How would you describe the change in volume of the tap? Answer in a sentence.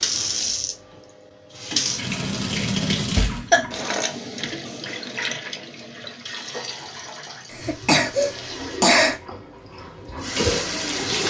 The loudness of the tap goes down, then up.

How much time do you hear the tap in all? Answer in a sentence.
You can hear the tap for 11 seconds altogether.